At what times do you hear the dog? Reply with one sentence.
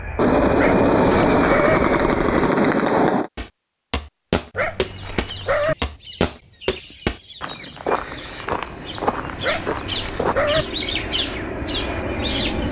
The dog can be heard from 0.6 to 1.8 s, from 4.5 to 5.8 s and from 9.4 to 10.7 s.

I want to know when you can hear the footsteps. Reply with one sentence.
You can hear the footsteps from 3.4 to 10.3 s.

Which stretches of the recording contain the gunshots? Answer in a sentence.
The gunshots can be heard from 0.1 to 3.3 s.